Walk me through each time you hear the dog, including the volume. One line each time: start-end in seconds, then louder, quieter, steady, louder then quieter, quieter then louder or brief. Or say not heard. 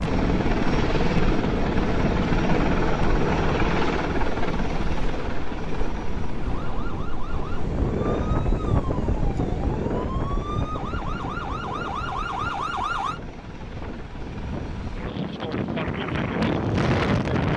not heard.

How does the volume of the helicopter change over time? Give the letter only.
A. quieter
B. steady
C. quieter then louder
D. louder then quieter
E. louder
A.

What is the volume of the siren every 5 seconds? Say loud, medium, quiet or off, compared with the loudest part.
off, medium, loud, off.